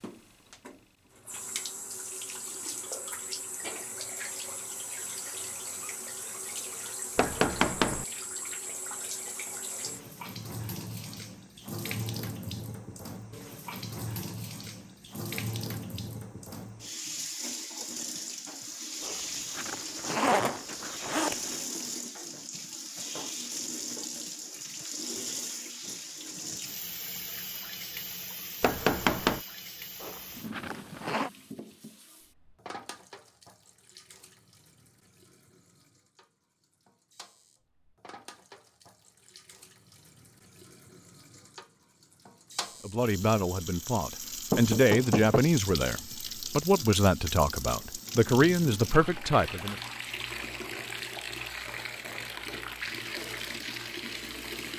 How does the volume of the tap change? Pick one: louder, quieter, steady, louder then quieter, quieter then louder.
quieter then louder.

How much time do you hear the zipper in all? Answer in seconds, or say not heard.
4 s.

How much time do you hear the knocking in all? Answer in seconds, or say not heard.
3 s.